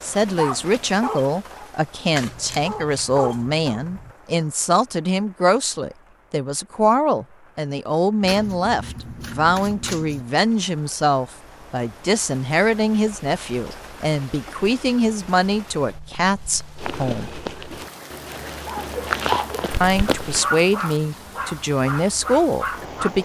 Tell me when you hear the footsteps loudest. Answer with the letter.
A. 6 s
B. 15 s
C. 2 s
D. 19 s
D.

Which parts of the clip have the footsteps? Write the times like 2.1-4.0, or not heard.
16.8-20.5.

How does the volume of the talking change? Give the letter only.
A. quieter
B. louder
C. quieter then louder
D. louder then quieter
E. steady
E.